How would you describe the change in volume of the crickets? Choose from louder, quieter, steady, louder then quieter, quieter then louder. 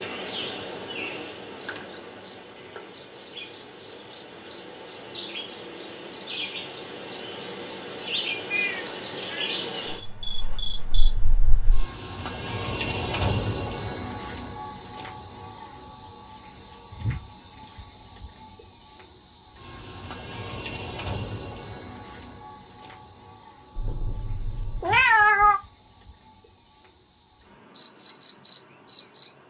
louder then quieter.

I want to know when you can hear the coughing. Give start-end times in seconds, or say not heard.
not heard.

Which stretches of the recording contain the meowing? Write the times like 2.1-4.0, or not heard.
8.5-9.6, 23.8-25.6.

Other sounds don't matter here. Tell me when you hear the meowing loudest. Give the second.
25 s.